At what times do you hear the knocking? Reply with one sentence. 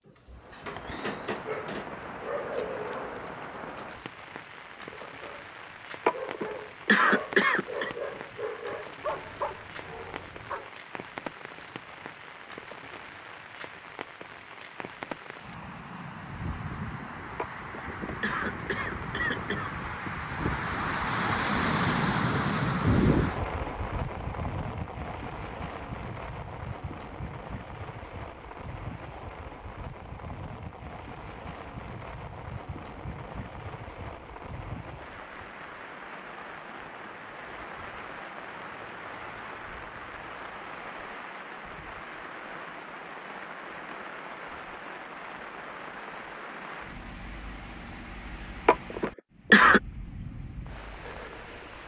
The knocking can't be heard in this clip.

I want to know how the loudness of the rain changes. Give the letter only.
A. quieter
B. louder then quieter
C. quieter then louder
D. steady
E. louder
B.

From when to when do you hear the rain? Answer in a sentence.
You can hear the rain from 0.1 to 51.8 s.